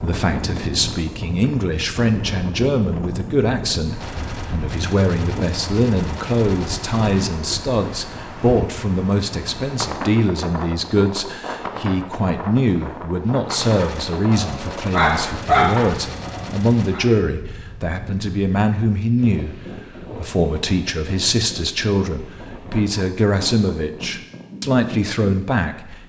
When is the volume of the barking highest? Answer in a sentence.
The loudest moment of the barking is at 16 seconds.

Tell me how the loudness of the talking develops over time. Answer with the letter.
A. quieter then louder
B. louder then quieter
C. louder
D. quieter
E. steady
E.